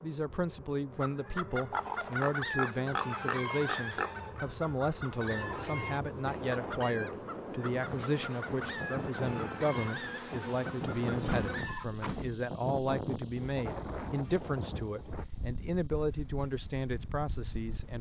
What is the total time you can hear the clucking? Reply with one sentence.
The clucking can be heard for 11 seconds in total.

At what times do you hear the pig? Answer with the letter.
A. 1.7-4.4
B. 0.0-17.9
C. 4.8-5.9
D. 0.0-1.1
A.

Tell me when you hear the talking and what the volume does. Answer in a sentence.
You can hear the talking from 0.0 to 17.9 s, at a steady volume.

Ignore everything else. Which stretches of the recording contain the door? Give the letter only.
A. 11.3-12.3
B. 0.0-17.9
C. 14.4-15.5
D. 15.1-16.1
A.